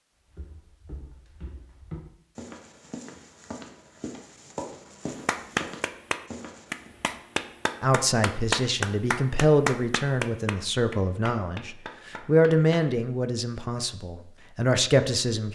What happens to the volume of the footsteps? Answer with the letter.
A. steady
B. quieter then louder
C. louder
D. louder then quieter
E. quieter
C.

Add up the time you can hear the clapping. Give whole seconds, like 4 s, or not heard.
8 s.